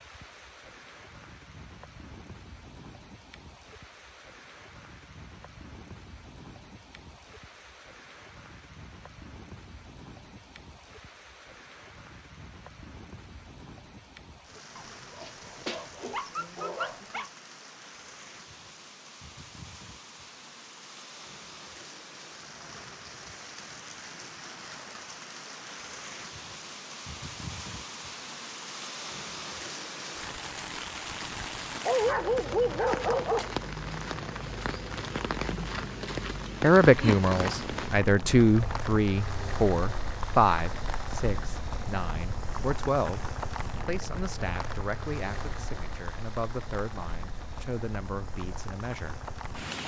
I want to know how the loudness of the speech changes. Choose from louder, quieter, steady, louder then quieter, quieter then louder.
quieter.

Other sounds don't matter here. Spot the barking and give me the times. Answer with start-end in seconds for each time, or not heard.
14.8-17.3, 31.2-33.5.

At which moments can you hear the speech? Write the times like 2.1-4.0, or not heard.
36.6-49.2.